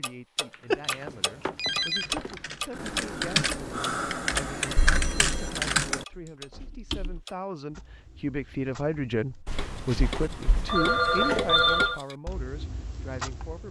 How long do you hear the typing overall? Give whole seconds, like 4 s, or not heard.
7 s.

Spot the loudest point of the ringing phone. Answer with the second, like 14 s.
12 s.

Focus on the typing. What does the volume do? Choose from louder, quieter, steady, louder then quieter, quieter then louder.
louder.